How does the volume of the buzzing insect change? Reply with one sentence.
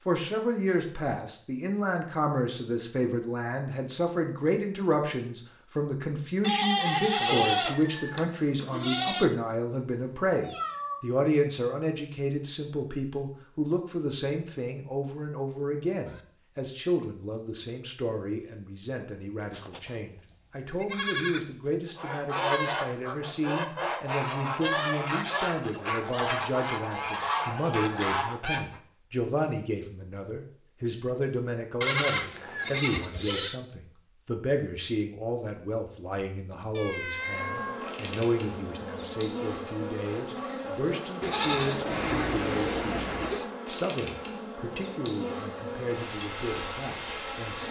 The loudness of the buzzing insect stays about the same.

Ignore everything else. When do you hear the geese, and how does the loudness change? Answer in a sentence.
The geese can be heard from 21.9 to 28.8 s, at a steady volume.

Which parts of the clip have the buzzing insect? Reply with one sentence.
The buzzing insect can be heard from 37.1 to 47.6 s.